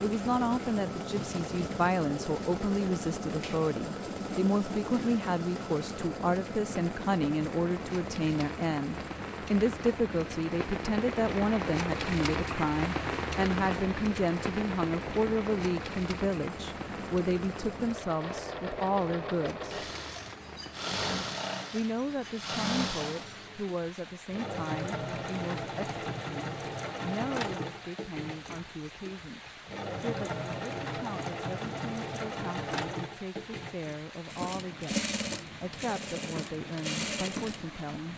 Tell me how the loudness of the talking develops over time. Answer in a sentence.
The volume of the talking goes down.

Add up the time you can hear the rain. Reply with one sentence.
You can hear the rain for 38 seconds altogether.